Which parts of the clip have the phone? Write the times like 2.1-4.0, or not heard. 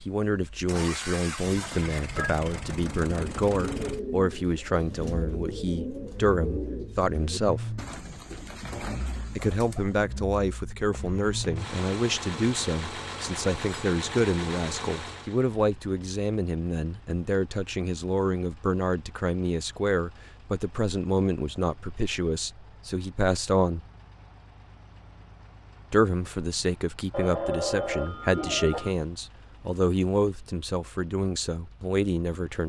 1.6-2.4, 10.9-11.6, 27.1-28.9.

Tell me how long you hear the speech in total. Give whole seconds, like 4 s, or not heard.
29 s.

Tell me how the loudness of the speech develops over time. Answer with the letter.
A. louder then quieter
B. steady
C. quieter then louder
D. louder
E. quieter
B.